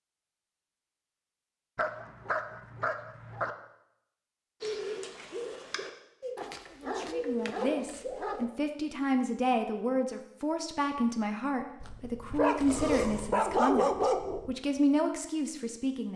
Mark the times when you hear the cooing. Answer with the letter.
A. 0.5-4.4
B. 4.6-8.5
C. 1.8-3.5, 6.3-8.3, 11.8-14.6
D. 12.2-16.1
B.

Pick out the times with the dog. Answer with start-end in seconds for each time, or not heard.
1.8-3.5, 6.3-8.3, 11.8-14.6.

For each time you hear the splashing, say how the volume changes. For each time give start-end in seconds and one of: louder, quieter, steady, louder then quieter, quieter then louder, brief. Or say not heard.
not heard.